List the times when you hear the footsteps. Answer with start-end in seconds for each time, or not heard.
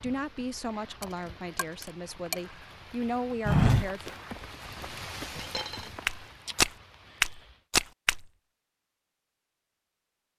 3.5-8.2.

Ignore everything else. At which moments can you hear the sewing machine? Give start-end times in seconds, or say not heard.
not heard.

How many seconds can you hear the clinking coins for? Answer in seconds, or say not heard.
2 s.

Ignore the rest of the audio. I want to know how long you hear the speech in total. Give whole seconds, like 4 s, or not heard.
4 s.